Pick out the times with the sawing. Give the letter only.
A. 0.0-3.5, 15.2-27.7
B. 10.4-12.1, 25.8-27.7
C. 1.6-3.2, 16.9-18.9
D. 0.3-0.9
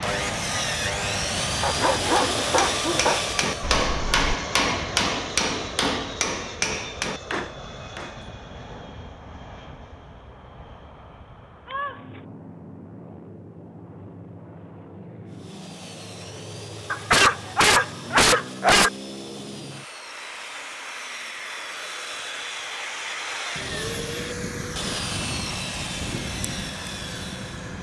A.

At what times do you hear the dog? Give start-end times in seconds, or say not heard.
1.6-3.2, 16.9-18.9.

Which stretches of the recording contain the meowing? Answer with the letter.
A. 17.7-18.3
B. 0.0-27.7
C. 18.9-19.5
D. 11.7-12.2
D.